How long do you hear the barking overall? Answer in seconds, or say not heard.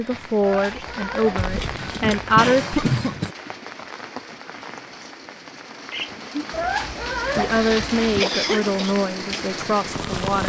4 s.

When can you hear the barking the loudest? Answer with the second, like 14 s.
7 s.